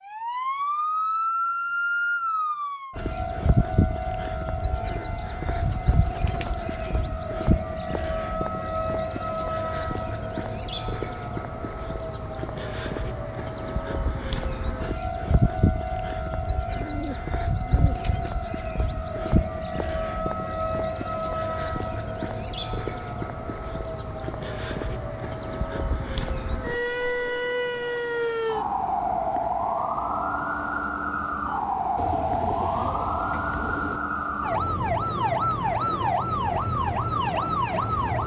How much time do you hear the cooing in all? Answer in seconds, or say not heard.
6 s.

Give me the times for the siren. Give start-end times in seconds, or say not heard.
0.1-38.2.